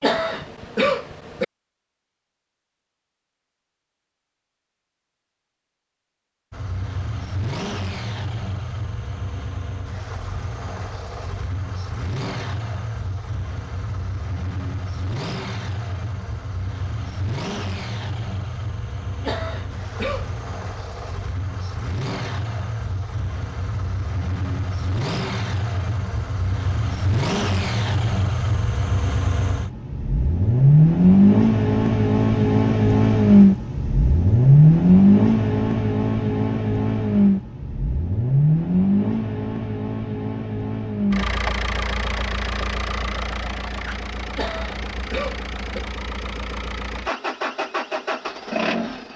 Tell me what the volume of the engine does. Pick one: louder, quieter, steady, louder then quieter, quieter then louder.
louder then quieter.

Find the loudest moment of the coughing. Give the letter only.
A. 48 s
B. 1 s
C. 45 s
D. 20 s
B.